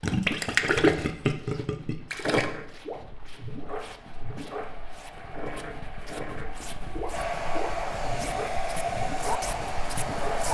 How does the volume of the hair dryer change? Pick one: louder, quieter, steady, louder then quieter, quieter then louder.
louder.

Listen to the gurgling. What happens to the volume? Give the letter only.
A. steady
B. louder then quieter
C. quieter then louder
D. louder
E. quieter
E.